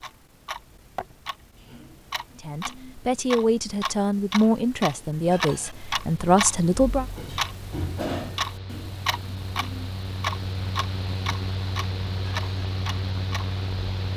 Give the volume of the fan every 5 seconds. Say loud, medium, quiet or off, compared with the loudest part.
off, medium, loud.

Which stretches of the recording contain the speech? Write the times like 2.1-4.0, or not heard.
2.4-7.0.